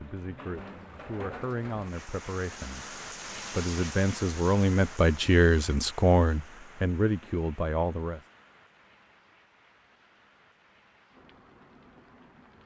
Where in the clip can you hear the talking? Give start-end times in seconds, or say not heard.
0.0-8.2.